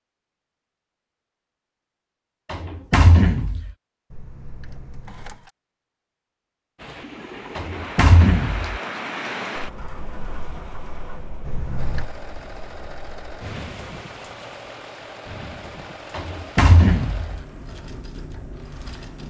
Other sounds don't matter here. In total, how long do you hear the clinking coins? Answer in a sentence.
You can hear the clinking coins for 2 seconds altogether.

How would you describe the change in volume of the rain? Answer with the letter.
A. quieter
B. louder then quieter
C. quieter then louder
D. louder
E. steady
A.